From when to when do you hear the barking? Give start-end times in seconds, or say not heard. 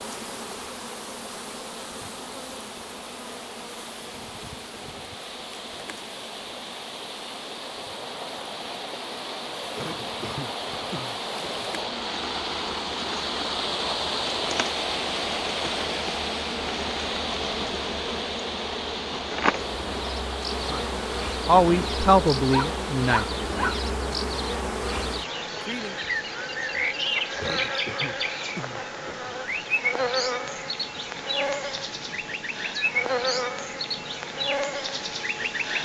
22.5-23.8.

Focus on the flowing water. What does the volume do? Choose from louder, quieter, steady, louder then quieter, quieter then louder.
louder then quieter.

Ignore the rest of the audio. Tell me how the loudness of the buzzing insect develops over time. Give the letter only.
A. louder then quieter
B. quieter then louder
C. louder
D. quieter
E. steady
C.